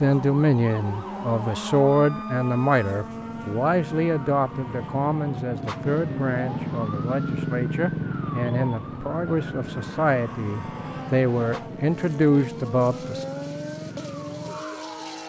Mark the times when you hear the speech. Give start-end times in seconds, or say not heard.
0.0-13.2.